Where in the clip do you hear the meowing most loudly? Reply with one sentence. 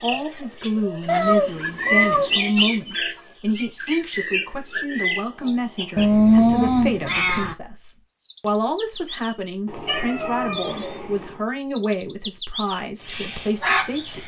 The loudest moment of the meowing is at 6 seconds.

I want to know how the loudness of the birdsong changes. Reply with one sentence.
The volume of the birdsong goes down, then up.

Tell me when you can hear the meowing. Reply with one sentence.
You can hear the meowing from 1.1 to 2.4 s, from 6.0 to 7.5 s and from 9.7 to 11.4 s.